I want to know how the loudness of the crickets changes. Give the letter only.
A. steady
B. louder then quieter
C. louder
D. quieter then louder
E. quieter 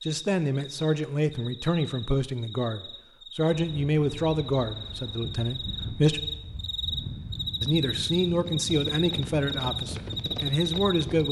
C.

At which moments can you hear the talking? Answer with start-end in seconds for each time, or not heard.
0.0-6.2, 7.6-11.2.